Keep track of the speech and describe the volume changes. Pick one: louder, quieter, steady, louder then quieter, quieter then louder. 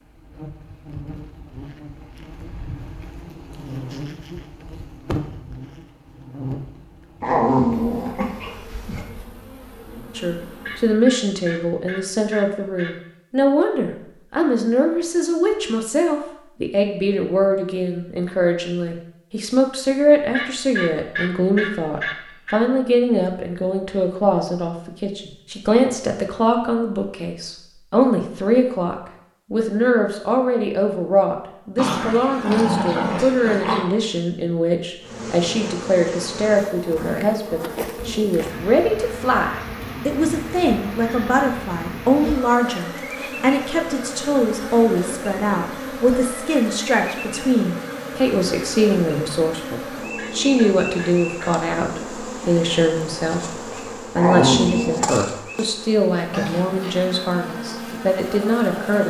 steady.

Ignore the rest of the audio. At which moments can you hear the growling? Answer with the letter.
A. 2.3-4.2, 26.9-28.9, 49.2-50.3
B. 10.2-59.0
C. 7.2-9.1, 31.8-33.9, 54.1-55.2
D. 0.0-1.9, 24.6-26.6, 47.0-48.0
C.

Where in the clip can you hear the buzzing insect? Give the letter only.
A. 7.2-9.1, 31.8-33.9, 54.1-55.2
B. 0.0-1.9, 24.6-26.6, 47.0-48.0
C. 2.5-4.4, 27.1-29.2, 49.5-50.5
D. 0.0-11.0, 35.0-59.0
D.